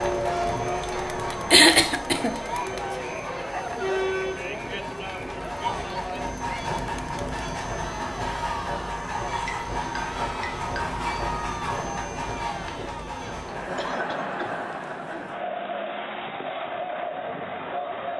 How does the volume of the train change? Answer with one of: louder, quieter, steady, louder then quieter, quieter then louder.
quieter then louder.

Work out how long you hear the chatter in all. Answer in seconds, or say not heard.
18 s.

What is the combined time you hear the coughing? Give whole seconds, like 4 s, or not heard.
2 s.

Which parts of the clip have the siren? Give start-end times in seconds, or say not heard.
not heard.